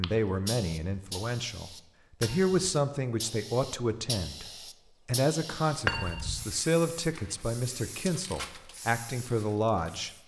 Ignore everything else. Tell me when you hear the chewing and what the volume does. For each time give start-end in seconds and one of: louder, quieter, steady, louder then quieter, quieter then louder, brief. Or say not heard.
not heard.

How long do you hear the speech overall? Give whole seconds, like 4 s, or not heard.
10 s.